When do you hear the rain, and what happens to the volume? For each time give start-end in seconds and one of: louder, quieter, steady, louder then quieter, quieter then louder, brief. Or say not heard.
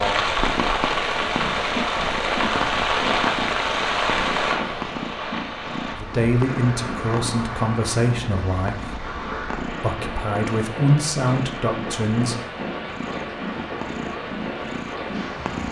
0.0-15.6 quieter.